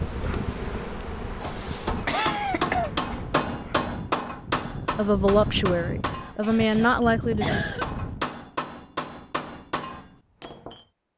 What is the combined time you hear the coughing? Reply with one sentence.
The coughing can be heard for 3 seconds in total.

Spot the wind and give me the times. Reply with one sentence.
You can hear the wind from 0.0 to 8.3 s.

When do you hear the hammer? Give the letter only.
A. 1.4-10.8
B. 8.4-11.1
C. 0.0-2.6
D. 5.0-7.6
A.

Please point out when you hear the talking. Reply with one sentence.
You can hear the talking from 5.0 to 7.6 s.